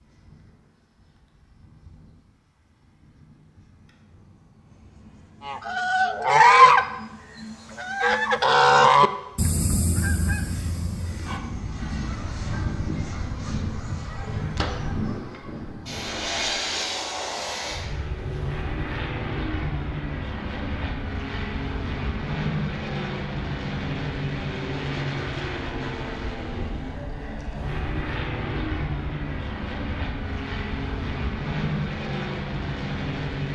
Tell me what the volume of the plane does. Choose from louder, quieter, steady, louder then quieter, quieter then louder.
louder.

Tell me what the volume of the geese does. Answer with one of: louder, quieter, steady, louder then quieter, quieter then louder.
quieter then louder.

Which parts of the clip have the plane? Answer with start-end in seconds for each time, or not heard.
0.0-33.5.